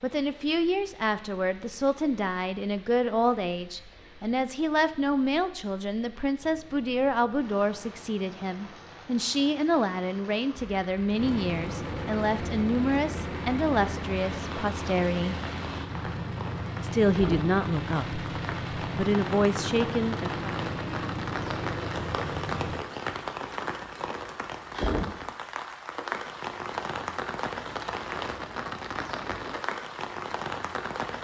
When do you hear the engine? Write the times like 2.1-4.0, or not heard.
6.3-22.9.